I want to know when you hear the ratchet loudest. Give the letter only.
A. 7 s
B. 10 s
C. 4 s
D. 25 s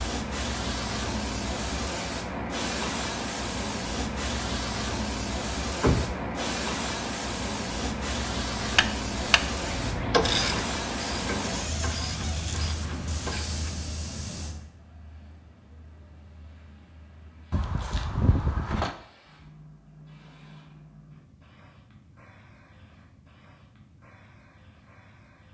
B.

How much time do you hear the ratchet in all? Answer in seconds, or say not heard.
5 s.